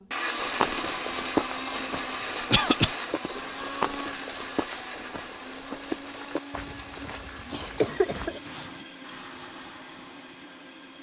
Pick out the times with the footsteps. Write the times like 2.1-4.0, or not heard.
0.3-8.5.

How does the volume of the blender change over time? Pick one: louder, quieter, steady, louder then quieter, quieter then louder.
quieter.